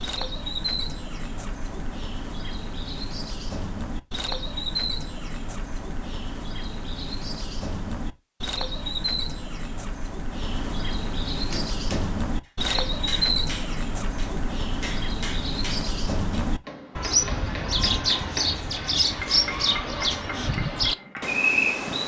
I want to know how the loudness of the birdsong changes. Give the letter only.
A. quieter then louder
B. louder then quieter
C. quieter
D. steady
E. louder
E.